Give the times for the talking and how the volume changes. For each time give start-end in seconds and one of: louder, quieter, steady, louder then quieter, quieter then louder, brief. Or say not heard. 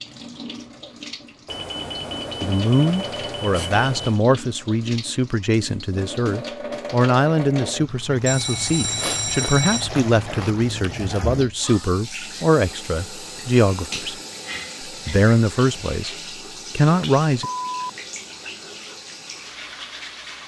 2.4-14.2 steady
14.8-16.1 brief
16.8-17.5 brief.